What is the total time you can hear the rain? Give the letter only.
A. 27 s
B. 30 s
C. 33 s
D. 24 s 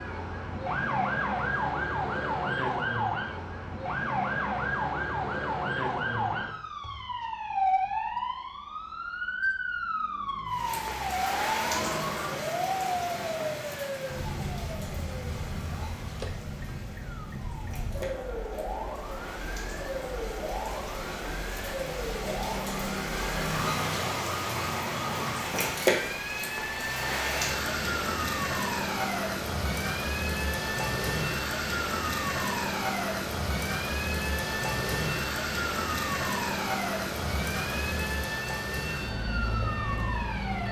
B.